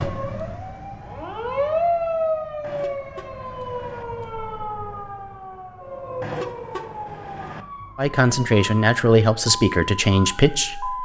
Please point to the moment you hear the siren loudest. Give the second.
2 s.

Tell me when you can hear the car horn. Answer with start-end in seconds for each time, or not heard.
2.6-4.0, 6.2-7.7.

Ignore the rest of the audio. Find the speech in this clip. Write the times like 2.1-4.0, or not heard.
8.0-11.0.